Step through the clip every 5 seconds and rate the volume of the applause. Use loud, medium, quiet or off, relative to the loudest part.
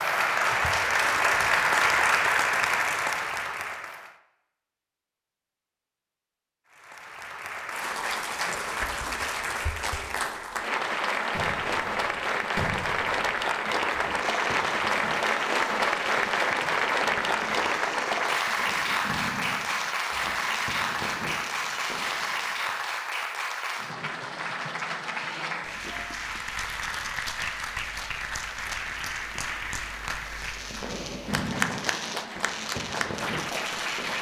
loud, medium, loud, loud, medium, medium, medium.